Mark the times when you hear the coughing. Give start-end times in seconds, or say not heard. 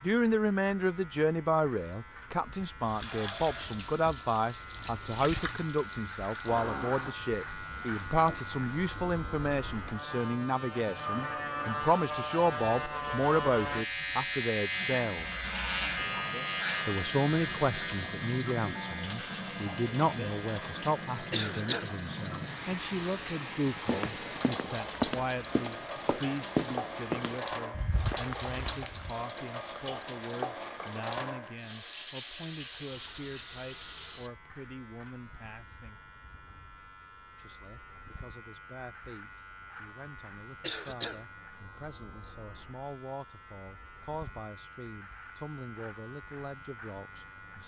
21.3-21.9, 40.6-41.2.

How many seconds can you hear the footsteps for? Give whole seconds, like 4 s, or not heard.
5 s.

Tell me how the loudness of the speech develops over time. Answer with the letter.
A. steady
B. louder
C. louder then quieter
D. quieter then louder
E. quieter
E.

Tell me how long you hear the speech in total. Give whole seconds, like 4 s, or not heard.
45 s.